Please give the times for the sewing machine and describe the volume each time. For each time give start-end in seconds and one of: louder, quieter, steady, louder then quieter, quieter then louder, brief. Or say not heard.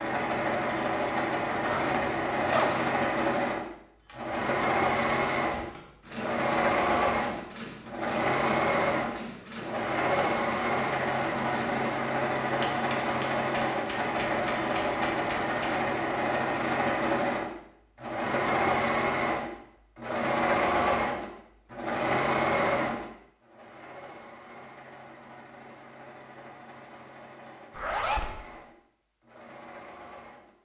0.0-30.5 quieter.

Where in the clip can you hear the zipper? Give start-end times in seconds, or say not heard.
1.6-2.9, 27.8-28.3.